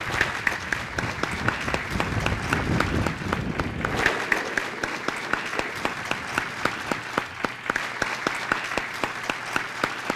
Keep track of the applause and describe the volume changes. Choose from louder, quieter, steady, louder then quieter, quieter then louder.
steady.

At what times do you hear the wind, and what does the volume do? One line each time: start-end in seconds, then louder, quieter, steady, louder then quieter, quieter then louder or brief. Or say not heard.
0.0-7.0 louder then quieter.